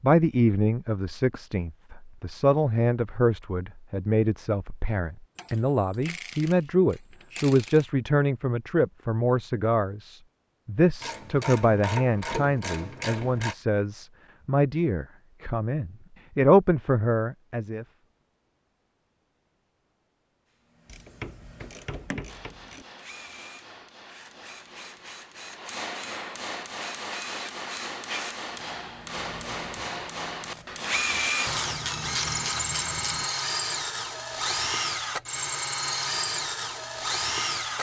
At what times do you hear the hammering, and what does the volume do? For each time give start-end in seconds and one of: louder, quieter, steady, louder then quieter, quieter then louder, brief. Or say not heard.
22.2-31.8 louder.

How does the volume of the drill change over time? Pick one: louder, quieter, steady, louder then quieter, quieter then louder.
louder.